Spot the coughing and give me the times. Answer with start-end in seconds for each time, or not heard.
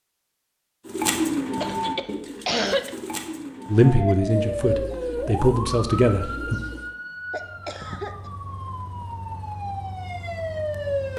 1.6-2.9, 7.3-8.3.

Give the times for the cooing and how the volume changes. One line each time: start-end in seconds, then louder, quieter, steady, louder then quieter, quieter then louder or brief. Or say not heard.
0.8-6.9 quieter.